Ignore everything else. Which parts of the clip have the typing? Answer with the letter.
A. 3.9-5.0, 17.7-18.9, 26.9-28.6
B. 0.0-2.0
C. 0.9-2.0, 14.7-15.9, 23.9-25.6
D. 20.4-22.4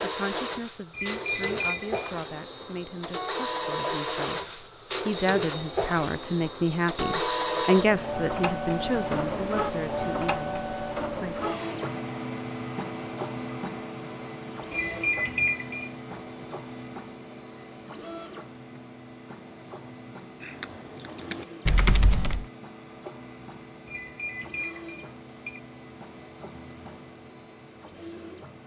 D.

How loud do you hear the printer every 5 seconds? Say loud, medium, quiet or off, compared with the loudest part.
loud, loud, loud, medium, quiet, quiet.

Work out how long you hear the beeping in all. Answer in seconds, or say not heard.
4 s.